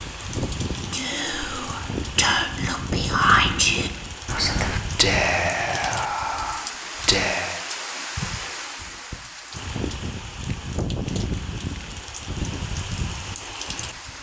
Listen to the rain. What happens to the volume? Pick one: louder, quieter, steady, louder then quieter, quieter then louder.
steady.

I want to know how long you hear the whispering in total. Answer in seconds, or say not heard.
7 s.